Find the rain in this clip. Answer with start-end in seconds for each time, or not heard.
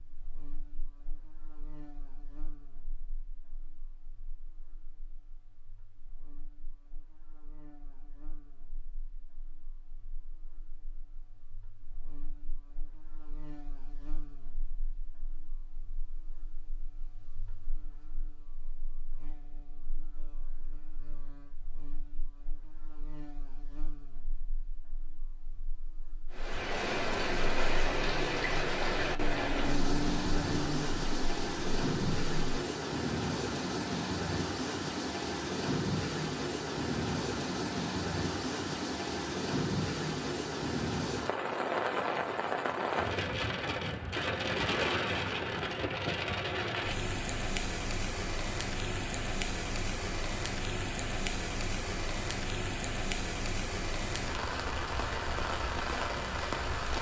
26.3-56.9.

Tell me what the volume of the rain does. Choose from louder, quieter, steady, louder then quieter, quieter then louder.
steady.